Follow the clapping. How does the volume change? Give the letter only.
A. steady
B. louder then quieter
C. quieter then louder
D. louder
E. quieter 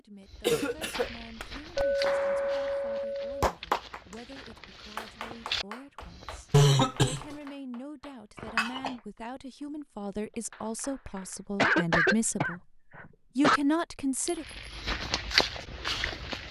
E.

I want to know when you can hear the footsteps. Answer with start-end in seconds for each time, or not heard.
0.2-6.5, 14.4-16.4.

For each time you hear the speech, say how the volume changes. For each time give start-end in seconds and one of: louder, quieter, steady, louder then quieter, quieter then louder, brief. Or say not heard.
0.0-14.4 louder.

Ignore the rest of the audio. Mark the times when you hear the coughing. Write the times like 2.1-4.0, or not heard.
0.4-1.1, 6.5-7.3, 11.6-13.6.